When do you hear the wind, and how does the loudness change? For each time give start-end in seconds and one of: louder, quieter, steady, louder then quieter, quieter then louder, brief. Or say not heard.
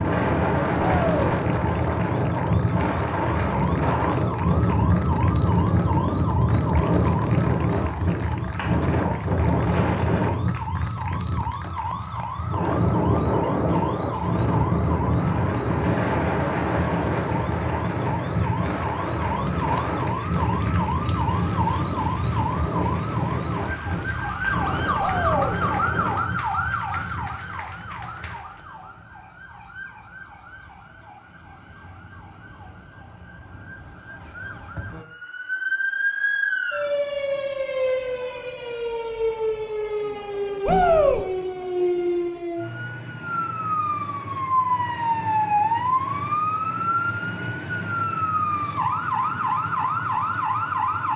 0.0-28.4 quieter.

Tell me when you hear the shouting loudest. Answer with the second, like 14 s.
41 s.